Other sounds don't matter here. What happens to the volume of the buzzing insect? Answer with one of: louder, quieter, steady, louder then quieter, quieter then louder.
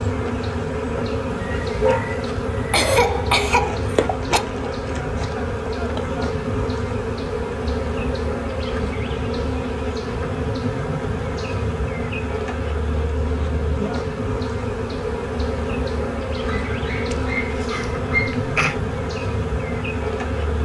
steady.